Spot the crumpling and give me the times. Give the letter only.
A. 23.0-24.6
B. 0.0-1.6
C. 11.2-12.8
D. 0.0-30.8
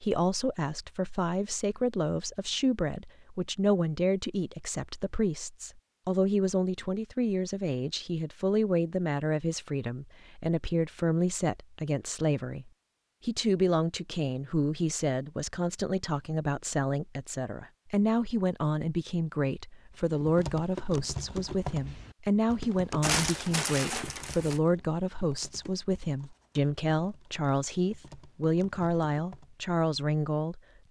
A.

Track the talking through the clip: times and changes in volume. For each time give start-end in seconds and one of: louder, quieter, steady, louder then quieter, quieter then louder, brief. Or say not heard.
0.0-30.8 steady.